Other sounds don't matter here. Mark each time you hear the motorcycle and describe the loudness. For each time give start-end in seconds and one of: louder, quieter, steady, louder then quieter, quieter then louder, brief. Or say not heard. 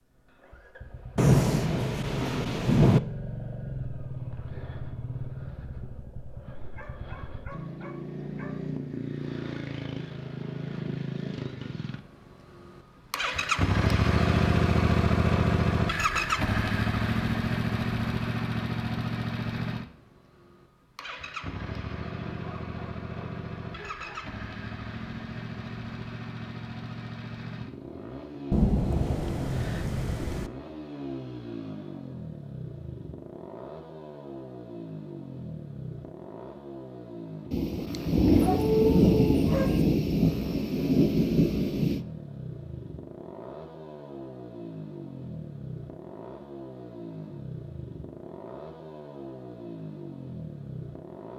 0.0-51.3 louder then quieter.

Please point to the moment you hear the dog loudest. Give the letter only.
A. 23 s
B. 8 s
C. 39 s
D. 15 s
C.